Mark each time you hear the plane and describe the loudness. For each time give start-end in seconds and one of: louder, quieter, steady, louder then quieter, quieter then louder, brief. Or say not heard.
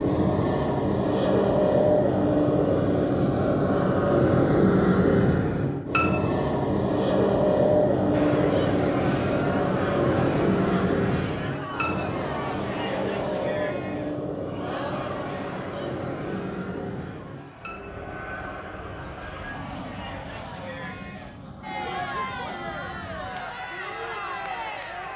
0.0-25.1 quieter.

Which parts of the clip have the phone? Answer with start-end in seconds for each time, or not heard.
not heard.